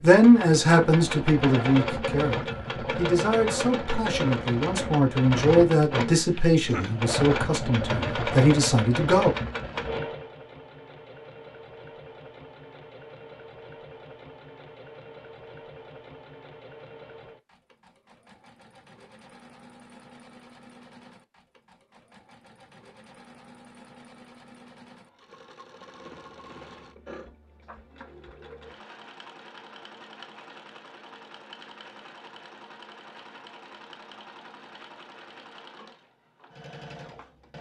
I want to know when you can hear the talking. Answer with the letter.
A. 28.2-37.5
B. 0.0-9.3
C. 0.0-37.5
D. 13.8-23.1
B.